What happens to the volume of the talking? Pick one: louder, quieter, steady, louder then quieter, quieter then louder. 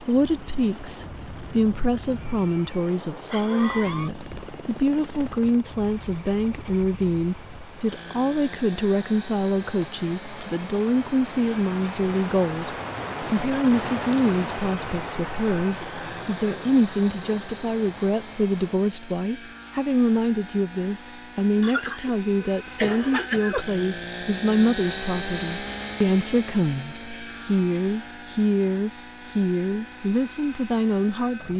steady.